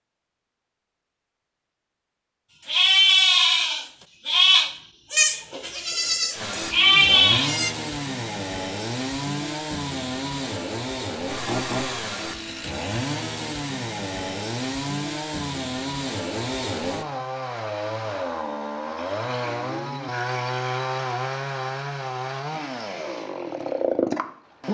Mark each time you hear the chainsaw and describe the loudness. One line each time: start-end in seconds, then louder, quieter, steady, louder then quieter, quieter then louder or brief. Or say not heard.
6.3-24.6 steady.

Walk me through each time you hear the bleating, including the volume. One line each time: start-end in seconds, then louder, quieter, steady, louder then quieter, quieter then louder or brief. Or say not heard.
2.6-7.8 quieter then louder.